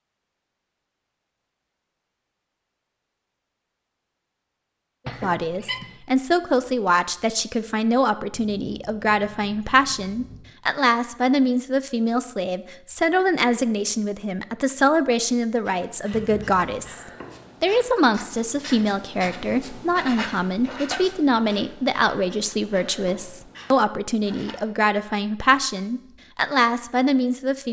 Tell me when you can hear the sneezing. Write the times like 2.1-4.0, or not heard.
5.0-6.0.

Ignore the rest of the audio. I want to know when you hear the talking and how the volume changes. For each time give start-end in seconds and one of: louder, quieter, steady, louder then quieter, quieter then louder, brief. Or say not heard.
5.0-27.6 steady.